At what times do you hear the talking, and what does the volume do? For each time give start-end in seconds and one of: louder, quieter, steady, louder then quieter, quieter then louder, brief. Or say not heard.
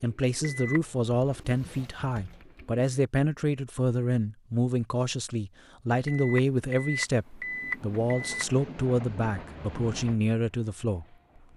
0.0-11.1 steady.